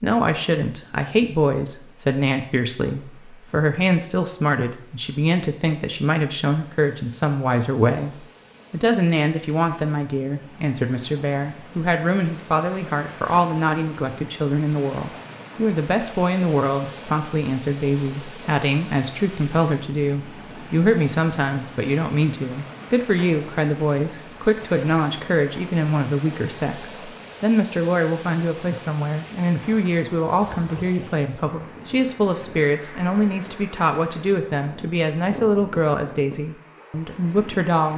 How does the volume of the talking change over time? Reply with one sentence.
The loudness of the talking stays about the same.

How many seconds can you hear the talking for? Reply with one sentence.
The talking can be heard for 38 seconds in total.